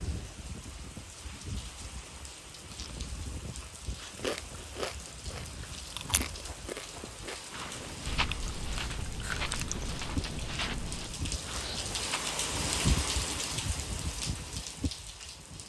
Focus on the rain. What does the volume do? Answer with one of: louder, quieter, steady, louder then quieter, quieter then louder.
louder.